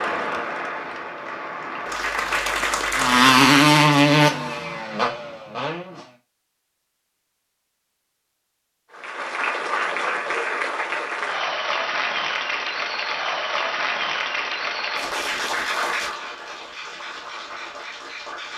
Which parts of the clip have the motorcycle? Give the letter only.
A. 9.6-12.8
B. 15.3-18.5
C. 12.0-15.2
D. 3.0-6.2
D.